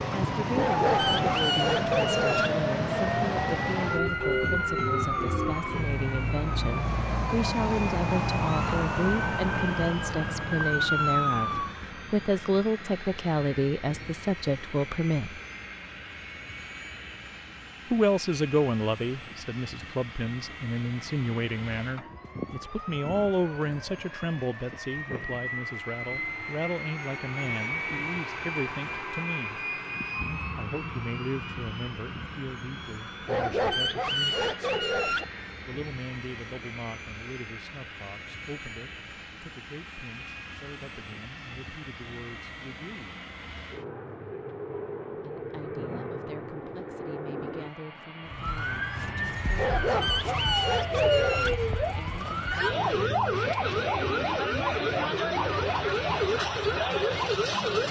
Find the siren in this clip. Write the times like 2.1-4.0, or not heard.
0.0-11.8, 48.2-57.8.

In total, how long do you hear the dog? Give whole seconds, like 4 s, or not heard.
6 s.